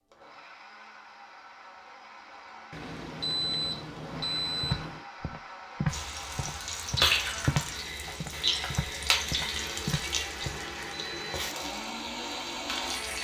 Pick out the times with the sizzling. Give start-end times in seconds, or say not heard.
5.9-13.1.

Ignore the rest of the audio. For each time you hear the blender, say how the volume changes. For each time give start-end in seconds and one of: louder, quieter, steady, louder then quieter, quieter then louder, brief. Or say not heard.
0.0-13.1 louder.